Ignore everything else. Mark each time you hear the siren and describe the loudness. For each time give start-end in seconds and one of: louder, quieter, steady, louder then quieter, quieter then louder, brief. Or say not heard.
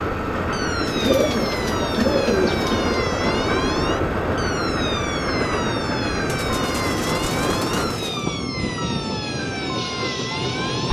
0.0-10.8 steady.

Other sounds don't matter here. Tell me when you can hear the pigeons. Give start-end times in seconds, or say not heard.
0.8-3.0, 6.2-8.2.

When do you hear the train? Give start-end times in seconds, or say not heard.
0.0-10.8.